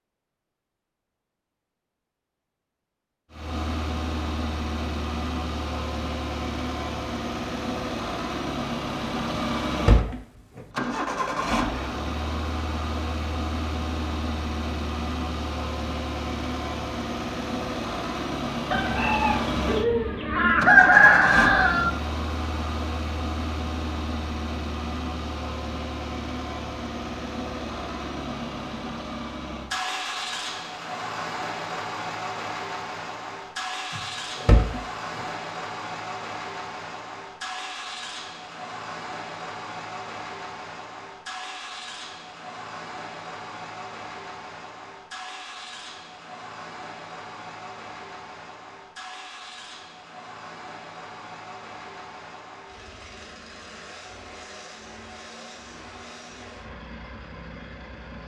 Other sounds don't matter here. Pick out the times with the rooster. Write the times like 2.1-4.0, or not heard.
18.7-21.9.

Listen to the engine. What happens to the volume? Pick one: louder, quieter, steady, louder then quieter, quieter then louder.
quieter.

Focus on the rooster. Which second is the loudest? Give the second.
21 s.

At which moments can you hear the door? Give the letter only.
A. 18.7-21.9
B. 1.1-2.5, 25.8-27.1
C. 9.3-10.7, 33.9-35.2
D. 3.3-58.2
C.